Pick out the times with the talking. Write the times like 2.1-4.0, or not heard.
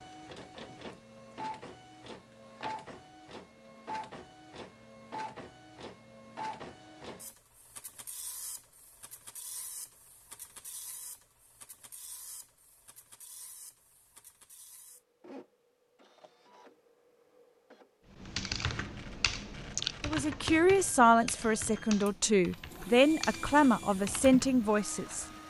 20.0-25.2.